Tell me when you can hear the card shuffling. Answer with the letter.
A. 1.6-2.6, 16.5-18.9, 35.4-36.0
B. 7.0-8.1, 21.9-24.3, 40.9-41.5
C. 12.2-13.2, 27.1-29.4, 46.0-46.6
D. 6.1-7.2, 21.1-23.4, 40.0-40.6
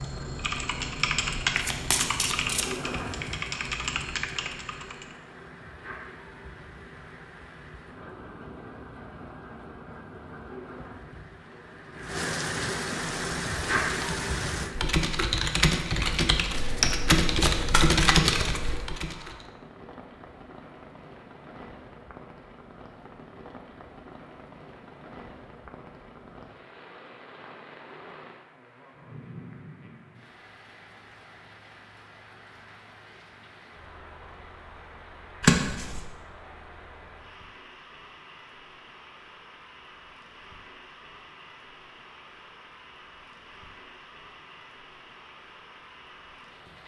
A.